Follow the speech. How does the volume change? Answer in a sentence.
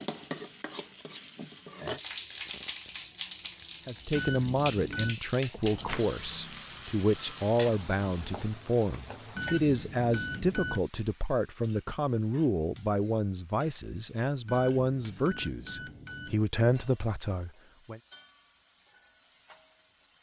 The loudness of the speech stays about the same.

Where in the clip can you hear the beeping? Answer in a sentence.
The beeping can be heard from 4.1 to 5.2 s, from 9.3 to 10.8 s and from 14.4 to 16.4 s.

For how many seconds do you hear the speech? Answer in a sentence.
The speech can be heard for 14 seconds in total.